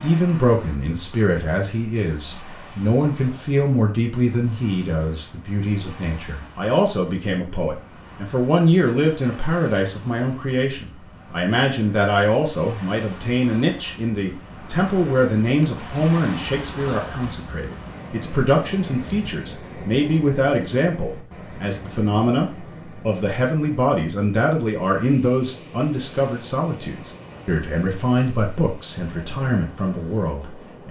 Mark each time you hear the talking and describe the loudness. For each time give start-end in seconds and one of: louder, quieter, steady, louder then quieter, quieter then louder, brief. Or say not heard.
0.0-30.8 steady.